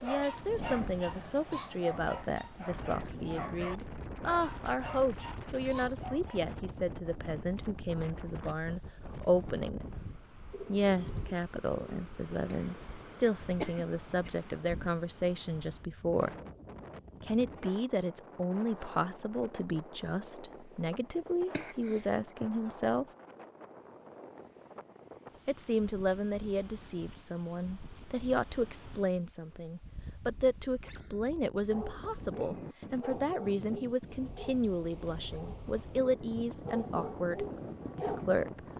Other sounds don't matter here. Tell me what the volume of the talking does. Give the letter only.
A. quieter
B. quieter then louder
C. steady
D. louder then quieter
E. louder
C.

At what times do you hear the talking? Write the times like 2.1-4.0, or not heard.
0.0-9.8, 10.7-16.3, 17.2-23.1, 25.4-38.6.